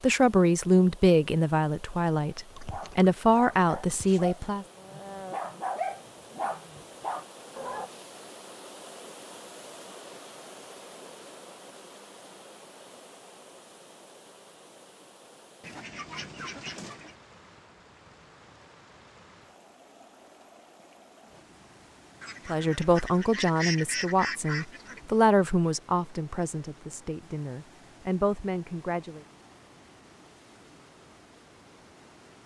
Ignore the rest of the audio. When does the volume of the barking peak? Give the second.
6 s.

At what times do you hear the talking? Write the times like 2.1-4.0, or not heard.
0.0-4.7, 22.4-29.2.